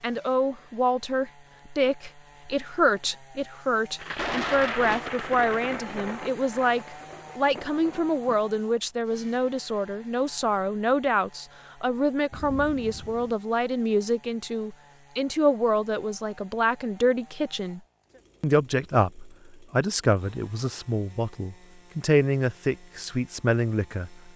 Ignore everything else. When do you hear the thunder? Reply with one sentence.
The thunder can be heard from 4.0 to 8.4 s and from 12.3 to 13.3 s.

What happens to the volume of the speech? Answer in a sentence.
The loudness of the speech stays about the same.